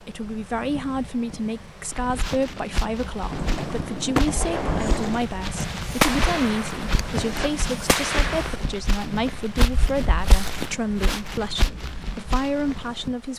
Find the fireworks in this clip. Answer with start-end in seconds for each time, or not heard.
3.3-8.6.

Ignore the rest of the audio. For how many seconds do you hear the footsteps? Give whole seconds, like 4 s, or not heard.
11 s.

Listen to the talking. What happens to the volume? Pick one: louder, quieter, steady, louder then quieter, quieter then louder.
steady.